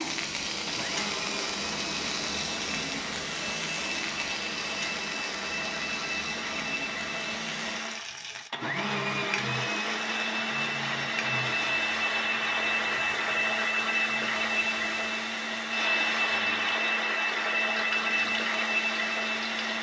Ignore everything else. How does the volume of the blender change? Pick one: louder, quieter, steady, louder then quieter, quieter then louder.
louder.